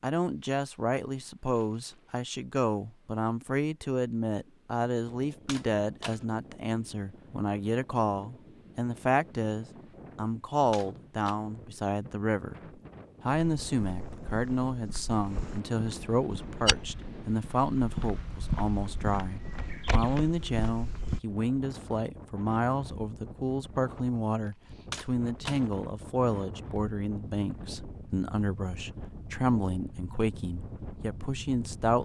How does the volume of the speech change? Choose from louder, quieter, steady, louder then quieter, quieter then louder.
steady.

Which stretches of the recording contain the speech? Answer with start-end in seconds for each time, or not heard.
0.0-12.6, 13.2-31.9.